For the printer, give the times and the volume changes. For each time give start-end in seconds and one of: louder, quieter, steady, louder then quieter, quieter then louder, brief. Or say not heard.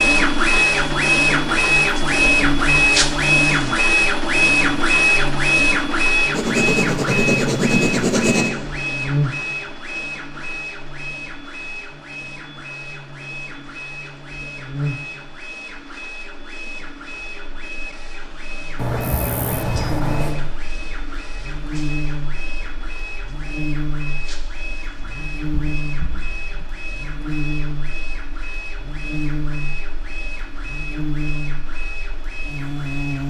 0.0-33.2 quieter.